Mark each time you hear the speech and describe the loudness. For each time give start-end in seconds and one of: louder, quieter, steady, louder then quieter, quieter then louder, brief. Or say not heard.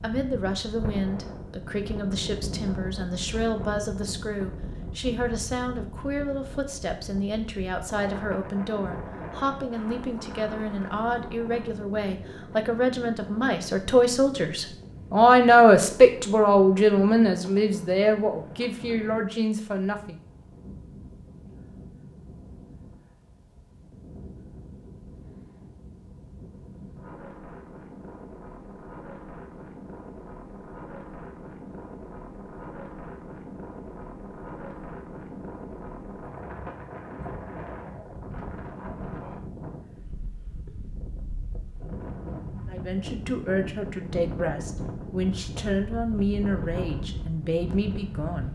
0.0-20.2 louder
42.6-48.5 steady.